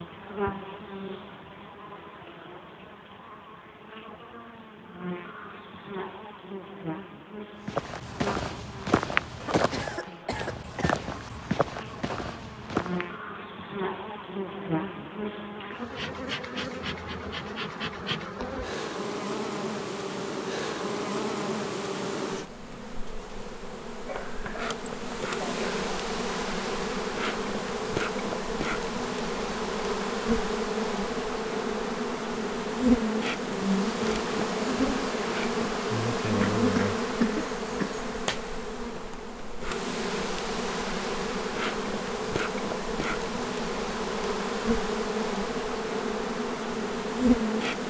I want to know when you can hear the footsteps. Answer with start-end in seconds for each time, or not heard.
7.7-13.1.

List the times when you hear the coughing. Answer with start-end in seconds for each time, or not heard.
9.4-11.0, 24.1-25.8, 36.4-38.4.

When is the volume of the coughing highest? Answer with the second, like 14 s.
37 s.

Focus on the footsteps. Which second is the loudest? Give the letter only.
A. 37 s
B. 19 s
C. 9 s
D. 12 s
C.